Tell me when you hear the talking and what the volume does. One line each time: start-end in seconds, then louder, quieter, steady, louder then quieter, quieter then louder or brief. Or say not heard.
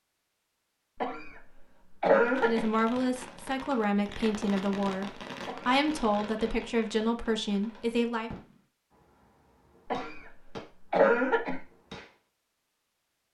2.4-8.3 steady.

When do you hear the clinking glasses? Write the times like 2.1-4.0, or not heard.
not heard.